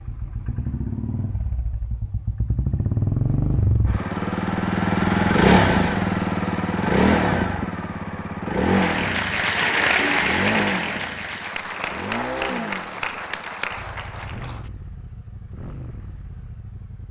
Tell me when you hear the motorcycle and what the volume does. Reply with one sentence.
The motorcycle can be heard from 0.0 to 17.0 s, getting louder then quieter.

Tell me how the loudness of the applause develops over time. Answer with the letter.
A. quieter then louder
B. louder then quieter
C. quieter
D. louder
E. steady
C.